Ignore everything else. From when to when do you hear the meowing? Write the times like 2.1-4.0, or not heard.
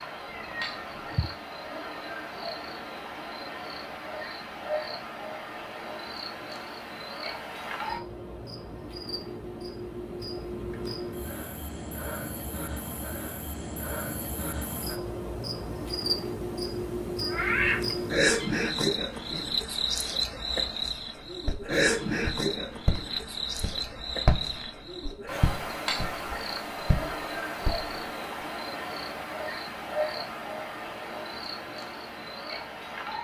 0.2-1.4, 17.2-18.5.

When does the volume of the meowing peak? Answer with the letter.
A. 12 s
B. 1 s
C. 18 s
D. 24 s
C.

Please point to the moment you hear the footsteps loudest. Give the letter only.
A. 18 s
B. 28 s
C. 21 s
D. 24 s
D.